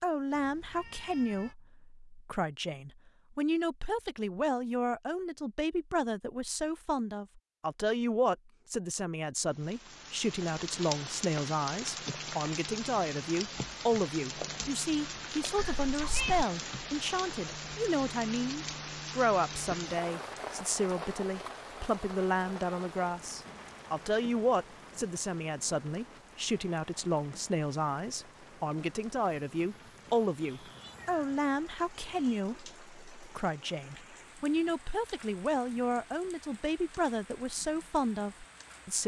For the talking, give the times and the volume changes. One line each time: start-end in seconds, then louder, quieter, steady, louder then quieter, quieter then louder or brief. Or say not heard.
0.0-39.0 steady.